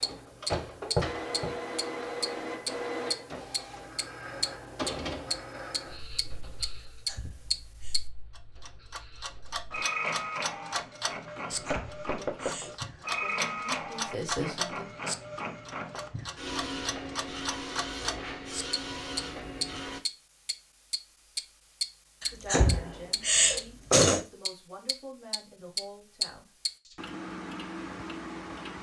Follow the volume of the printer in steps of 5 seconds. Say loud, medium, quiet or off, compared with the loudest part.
loud, medium, loud, loud, off, off.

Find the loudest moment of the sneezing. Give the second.
24 s.